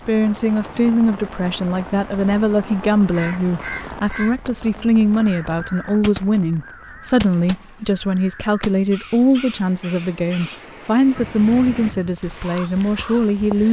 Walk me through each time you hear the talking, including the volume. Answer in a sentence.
The talking can be heard from 0.1 to 13.6 s, at a steady volume.